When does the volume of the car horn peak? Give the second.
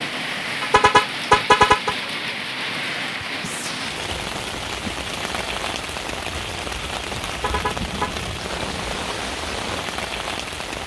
1 s.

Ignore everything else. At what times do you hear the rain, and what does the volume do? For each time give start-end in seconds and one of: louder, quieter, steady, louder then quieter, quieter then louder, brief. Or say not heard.
0.0-10.8 steady.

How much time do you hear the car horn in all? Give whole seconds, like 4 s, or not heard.
2 s.